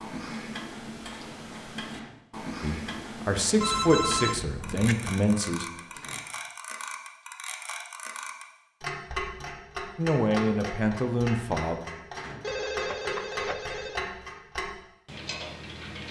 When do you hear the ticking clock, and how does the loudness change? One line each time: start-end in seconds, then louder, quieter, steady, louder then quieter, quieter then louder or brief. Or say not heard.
0.0-16.0 steady.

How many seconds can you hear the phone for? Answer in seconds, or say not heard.
3 s.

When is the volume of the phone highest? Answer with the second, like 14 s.
4 s.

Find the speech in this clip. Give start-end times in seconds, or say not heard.
2.6-5.7, 9.9-11.8.